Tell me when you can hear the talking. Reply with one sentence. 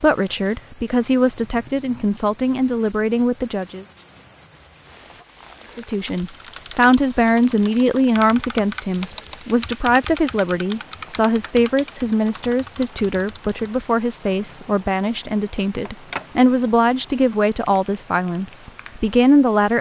The talking can be heard from 0.0 to 3.9 s and from 5.8 to 19.7 s.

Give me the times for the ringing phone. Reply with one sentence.
The ringing phone can be heard from 15.8 to 16.3 s.